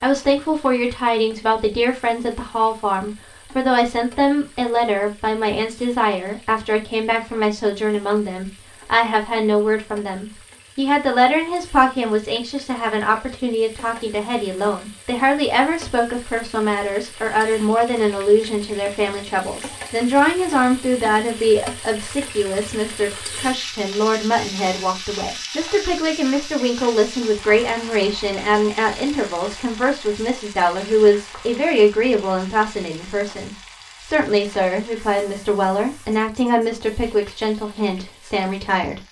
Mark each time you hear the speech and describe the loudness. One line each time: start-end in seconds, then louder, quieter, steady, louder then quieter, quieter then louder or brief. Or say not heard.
0.0-39.0 steady.